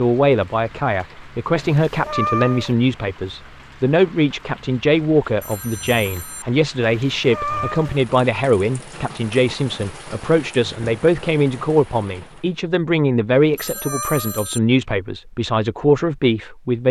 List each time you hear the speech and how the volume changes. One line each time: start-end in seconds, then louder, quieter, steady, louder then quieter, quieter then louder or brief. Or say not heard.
0.0-16.8 steady.